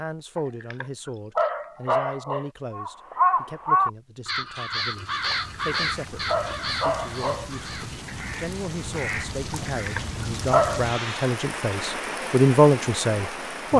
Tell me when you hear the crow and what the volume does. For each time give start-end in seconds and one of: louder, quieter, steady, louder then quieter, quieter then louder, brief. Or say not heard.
2.7-9.8 quieter then louder.